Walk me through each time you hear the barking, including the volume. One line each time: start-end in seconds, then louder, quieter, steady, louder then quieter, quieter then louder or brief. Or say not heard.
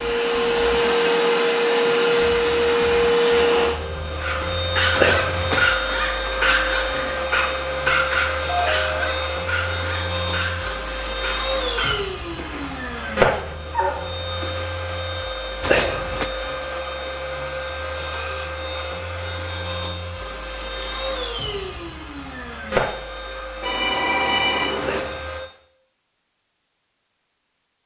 4.2-14.7 quieter.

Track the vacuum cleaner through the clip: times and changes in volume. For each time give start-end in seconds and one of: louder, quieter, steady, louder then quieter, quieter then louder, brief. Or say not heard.
0.0-25.4 quieter.